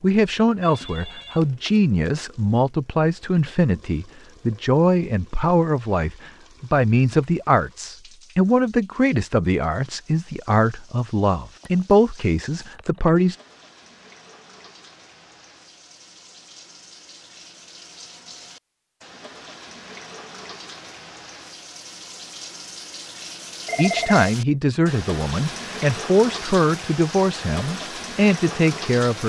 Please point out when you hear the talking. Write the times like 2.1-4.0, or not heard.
0.0-13.3, 23.8-29.2.